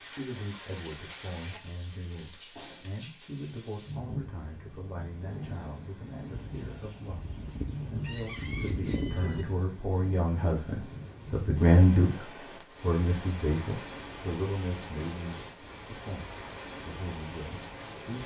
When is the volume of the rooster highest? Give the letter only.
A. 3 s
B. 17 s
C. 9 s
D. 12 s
C.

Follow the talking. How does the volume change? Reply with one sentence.
The loudness of the talking goes up, then down.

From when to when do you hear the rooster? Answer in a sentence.
The rooster can be heard from 6.3 to 9.4 s.